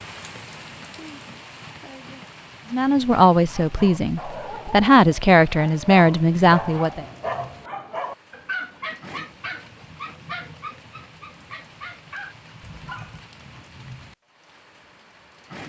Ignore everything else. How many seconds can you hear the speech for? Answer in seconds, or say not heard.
4 s.